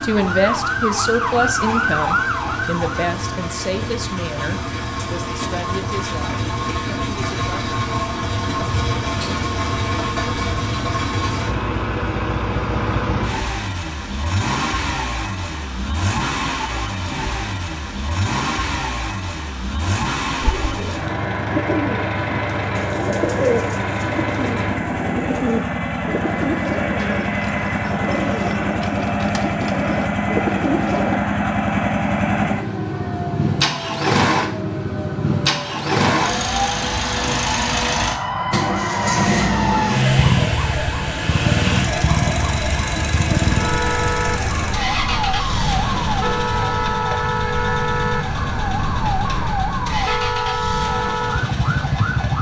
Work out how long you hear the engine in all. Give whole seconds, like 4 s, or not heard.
52 s.